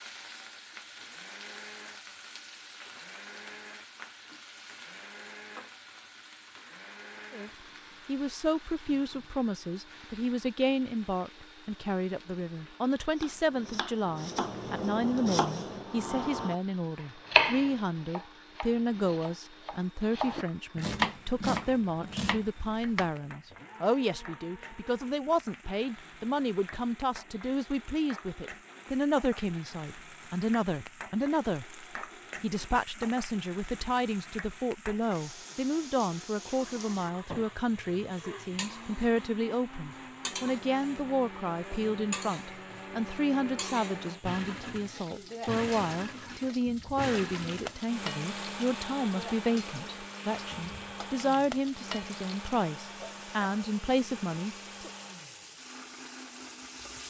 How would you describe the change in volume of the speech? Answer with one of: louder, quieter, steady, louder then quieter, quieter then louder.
steady.